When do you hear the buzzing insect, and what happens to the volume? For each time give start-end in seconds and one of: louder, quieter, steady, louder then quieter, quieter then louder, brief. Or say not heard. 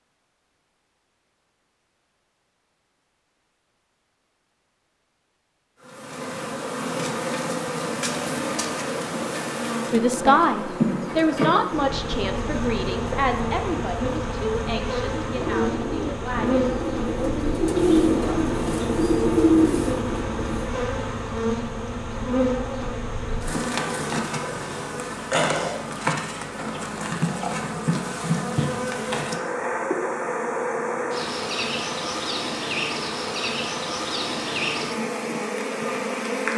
5.8-36.5 steady.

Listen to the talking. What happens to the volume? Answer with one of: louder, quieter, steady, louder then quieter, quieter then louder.
quieter.